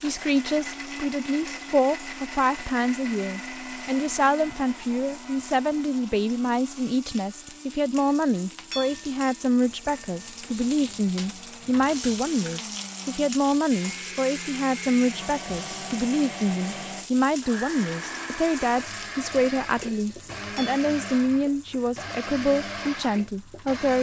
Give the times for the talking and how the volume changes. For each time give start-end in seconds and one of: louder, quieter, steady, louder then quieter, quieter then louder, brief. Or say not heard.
0.0-23.9 steady.